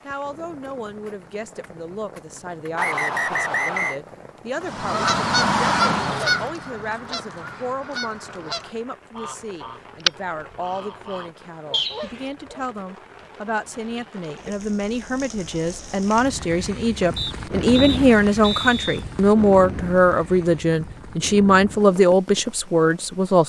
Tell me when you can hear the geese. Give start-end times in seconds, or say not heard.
4.6-12.7.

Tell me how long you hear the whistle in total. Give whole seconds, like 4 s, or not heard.
4 s.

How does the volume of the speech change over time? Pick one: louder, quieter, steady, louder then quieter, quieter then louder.
louder.